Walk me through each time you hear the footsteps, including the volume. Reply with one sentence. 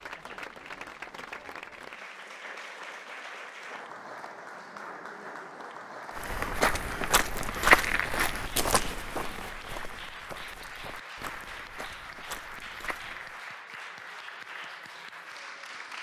The footsteps can be heard from 6.2 to 13.4 s, getting quieter.